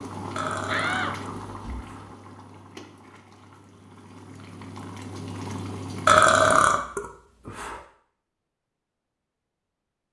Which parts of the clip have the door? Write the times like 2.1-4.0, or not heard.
0.7-1.9.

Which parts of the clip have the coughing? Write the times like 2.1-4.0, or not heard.
not heard.